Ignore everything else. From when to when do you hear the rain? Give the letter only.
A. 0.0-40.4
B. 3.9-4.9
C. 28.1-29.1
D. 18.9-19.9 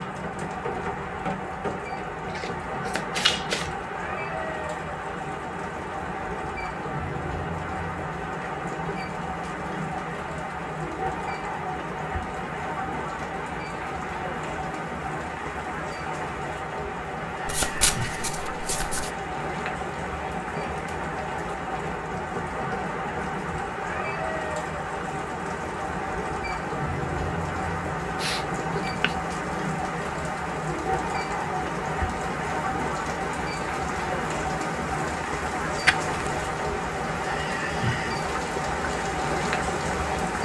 A.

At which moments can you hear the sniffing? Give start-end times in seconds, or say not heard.
28.1-29.1.